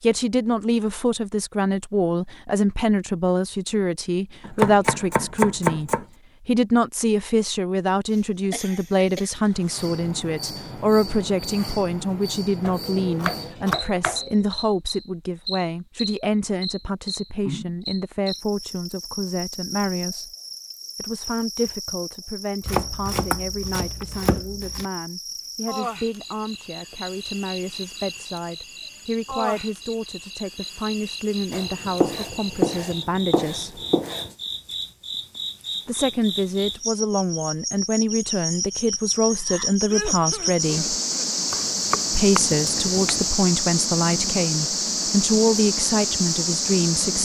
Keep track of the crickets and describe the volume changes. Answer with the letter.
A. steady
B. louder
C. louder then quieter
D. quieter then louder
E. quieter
B.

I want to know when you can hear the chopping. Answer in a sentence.
The chopping can be heard from 4.5 to 6.0 s, from 12.6 to 14.4 s, from 22.6 to 24.9 s, from 31.5 to 34.3 s and from 41.5 to 43.3 s.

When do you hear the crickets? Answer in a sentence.
The crickets can be heard from 9.4 to 47.2 s.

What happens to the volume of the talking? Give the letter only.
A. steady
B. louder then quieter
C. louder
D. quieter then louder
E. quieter
D.